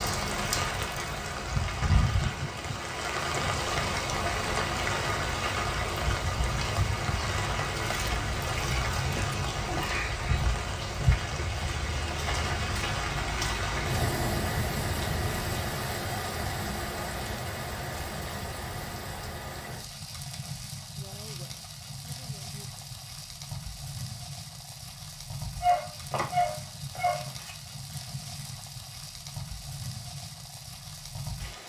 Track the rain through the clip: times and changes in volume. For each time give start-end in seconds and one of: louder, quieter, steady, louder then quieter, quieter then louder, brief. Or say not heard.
0.0-31.6 quieter.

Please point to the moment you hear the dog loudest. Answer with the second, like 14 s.
26 s.